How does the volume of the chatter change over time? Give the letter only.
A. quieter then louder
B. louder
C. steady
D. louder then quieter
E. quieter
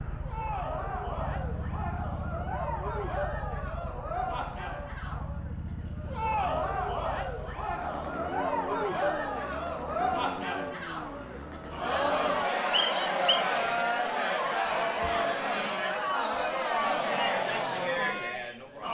B.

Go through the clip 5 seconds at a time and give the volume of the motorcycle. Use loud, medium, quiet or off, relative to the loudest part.
loud, loud, loud, off.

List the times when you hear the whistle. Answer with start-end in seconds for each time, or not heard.
12.7-13.5.